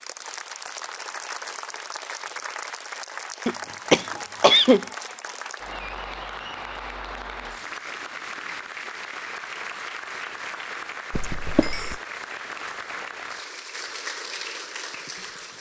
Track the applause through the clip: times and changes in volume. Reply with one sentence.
The applause can be heard from 0.0 to 15.5 s, at a steady volume.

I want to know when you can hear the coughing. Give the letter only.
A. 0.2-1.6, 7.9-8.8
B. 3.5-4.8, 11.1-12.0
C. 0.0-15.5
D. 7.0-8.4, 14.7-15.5
B.